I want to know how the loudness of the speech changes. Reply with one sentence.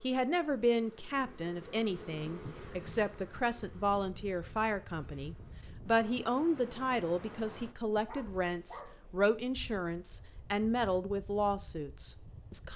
The volume of the speech stays about the same.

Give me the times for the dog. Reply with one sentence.
You can hear the dog from 7.5 to 8.9 s.